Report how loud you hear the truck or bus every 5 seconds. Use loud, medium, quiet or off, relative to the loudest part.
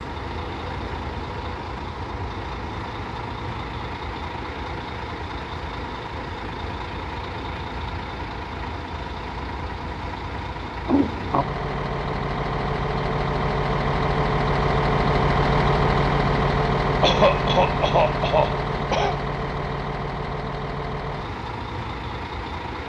medium, medium, loud, loud, medium.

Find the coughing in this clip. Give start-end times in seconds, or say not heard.
17.0-19.2.